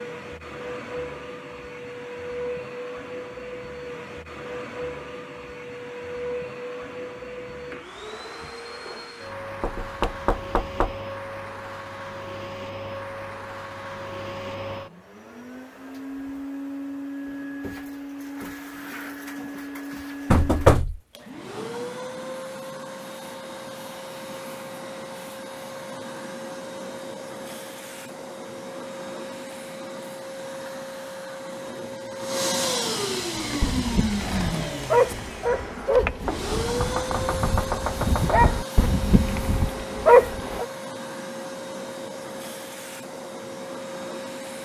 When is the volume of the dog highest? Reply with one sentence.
The loudest moment of the dog is at 40 seconds.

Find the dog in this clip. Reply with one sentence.
You can hear the dog from 33.6 to 40.6 s.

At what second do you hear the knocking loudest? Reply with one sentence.
The loudest moment of the knocking is at 21 seconds.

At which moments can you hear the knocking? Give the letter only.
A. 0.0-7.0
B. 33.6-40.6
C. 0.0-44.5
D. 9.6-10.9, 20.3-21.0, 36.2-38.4
D.